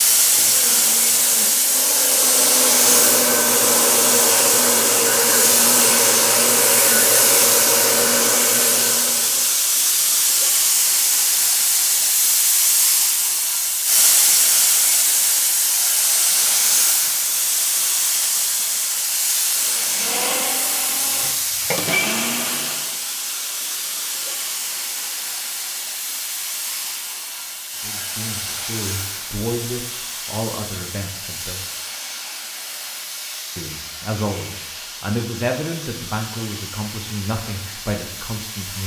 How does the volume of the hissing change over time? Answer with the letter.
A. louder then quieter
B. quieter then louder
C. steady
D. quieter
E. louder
D.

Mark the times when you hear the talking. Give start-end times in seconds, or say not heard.
27.8-31.6, 33.5-38.8.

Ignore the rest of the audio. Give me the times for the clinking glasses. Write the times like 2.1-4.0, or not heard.
not heard.